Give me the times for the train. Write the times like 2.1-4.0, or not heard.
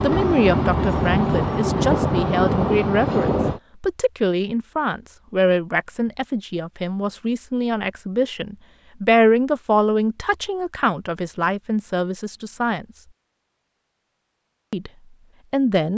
0.0-3.6.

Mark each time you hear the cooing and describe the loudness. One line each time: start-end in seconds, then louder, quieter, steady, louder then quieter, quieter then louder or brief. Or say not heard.
not heard.